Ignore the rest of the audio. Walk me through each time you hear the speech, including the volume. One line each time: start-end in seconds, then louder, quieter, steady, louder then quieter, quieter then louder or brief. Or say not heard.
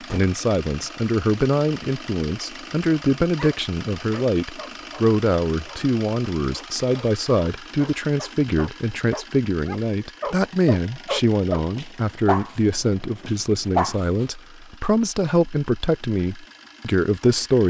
0.1-17.6 steady.